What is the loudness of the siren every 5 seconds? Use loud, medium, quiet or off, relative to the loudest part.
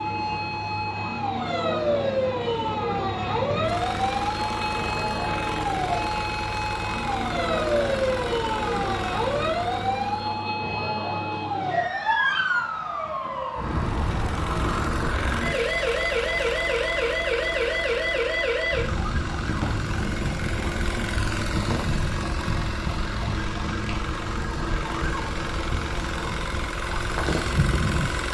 loud, loud, loud, loud, medium, medium.